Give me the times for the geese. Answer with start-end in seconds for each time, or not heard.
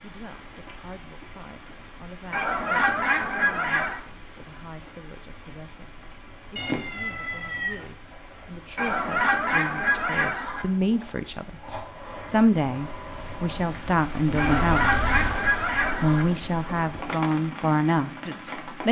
2.3-4.0, 8.8-10.7, 14.3-16.2.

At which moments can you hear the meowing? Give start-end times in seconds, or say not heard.
6.5-7.8, 14.3-15.4.